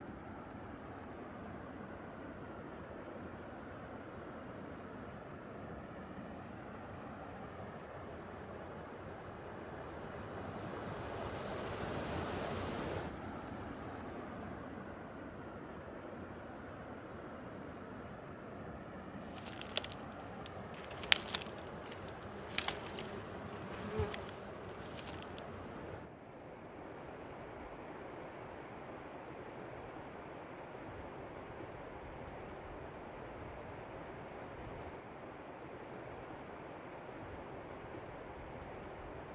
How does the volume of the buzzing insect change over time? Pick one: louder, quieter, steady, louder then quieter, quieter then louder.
louder then quieter.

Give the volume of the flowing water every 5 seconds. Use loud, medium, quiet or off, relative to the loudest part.
medium, medium, loud, medium, medium, medium, medium, medium.